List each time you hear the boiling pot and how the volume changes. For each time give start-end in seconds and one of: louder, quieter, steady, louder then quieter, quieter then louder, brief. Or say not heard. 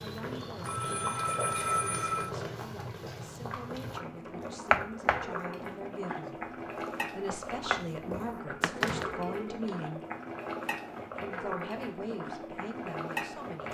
0.0-13.6 steady.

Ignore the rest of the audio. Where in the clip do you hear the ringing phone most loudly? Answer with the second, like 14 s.
2 s.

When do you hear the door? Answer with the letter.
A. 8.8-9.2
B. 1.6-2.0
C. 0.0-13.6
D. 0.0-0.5
A.